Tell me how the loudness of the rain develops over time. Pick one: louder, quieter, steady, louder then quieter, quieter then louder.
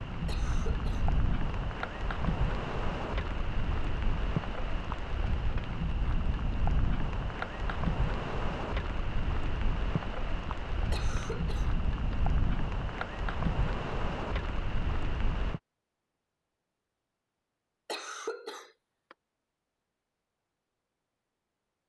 steady.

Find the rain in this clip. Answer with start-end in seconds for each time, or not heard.
0.0-15.6.